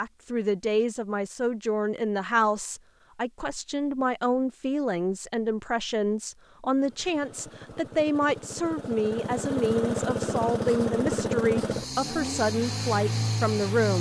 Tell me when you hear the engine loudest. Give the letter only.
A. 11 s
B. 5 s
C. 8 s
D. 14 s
A.